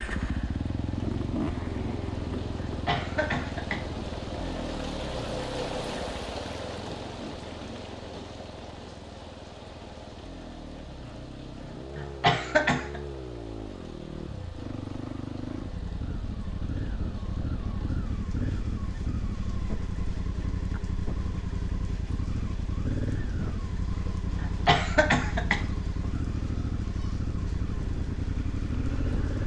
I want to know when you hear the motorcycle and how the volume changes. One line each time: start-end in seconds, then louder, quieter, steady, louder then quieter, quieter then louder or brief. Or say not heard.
0.0-29.4 quieter then louder.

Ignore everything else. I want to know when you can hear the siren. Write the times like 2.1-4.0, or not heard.
not heard.